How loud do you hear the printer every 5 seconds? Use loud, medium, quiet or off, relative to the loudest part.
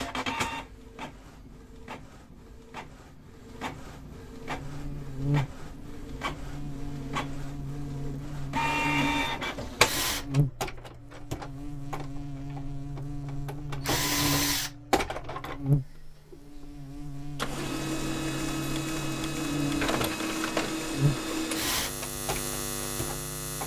medium, loud, loud, loud, loud.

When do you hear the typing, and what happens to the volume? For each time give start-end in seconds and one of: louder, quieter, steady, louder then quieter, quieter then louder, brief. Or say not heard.
not heard.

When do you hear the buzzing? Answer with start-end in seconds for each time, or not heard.
4.4-23.6.